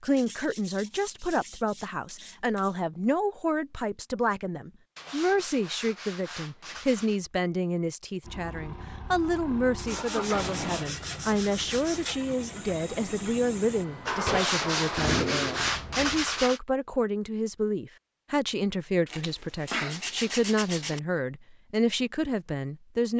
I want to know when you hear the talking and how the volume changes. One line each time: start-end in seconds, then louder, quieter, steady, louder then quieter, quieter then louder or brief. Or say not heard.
0.0-23.1 steady.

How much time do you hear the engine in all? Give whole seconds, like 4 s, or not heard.
8 s.